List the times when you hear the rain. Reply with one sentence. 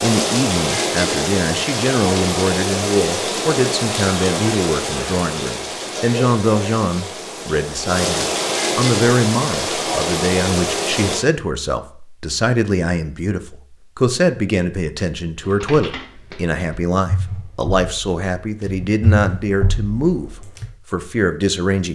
You can hear the rain from 0.0 to 11.2 s.